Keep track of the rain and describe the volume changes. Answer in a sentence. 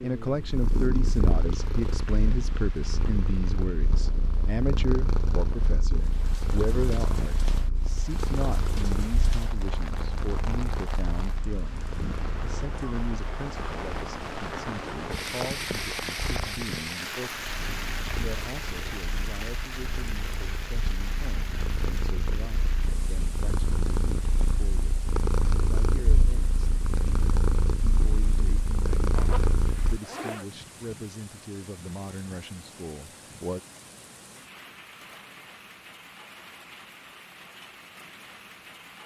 The volume of the rain goes up, then down.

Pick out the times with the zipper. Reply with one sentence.
You can hear the zipper from 29.1 to 30.4 s.